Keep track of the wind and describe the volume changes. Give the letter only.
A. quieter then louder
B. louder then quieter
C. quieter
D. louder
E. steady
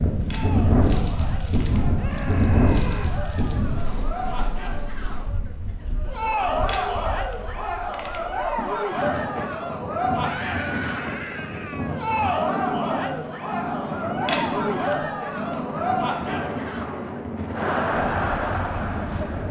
A.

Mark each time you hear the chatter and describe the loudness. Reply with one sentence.
The chatter can be heard from 0.2 to 19.4 s, getting louder.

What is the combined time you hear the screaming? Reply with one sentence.
The screaming can be heard for 3 seconds in total.